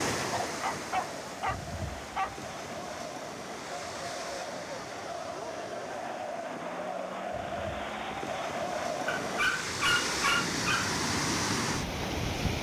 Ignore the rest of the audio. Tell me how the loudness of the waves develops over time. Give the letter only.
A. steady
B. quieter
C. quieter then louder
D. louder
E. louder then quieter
C.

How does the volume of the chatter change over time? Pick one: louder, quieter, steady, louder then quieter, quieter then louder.
louder.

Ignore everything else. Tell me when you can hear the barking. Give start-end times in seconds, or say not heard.
0.2-2.3, 9.1-10.9.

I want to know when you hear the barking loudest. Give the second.
10 s.